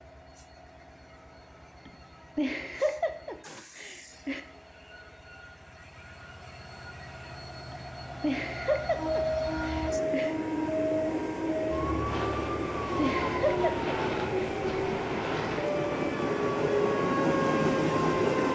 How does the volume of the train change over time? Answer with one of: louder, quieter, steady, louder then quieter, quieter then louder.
louder.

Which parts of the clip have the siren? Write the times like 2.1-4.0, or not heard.
8.9-18.5.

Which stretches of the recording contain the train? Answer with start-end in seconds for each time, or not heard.
0.0-18.5.